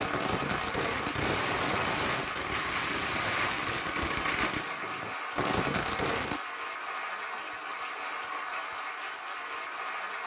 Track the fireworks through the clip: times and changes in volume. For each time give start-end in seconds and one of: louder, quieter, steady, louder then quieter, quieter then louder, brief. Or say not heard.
0.0-6.4 steady.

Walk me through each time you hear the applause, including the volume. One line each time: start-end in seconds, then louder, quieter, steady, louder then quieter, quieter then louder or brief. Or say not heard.
0.0-10.2 steady.